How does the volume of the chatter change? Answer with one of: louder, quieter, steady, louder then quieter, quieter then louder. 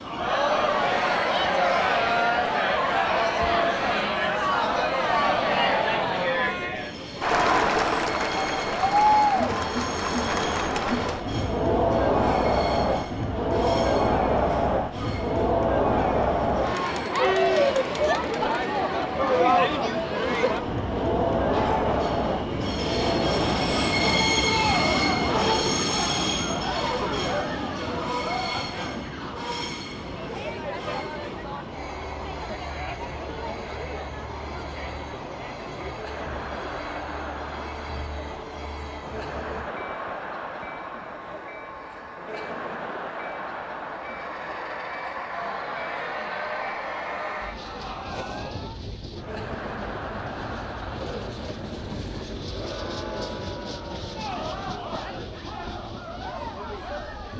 quieter.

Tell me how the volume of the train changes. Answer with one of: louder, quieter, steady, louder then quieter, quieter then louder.
louder then quieter.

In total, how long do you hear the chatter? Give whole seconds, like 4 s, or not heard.
57 s.